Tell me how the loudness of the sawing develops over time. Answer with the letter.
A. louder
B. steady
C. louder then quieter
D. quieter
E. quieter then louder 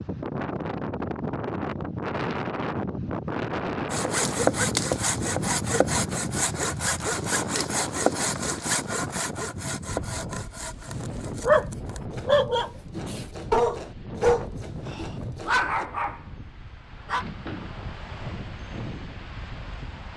D.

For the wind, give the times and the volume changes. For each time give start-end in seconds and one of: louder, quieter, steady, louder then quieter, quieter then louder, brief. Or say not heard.
0.0-20.1 quieter.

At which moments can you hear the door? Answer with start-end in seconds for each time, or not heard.
17.2-17.9.